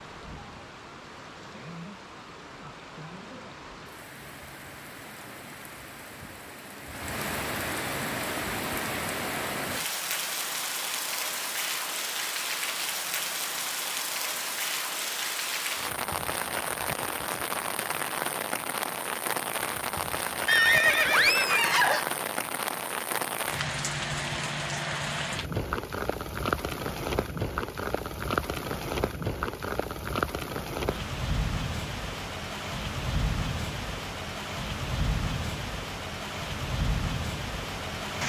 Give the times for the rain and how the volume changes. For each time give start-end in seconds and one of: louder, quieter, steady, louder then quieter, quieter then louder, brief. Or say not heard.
0.0-38.2 louder.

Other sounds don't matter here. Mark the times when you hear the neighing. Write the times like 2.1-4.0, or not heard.
20.4-22.1.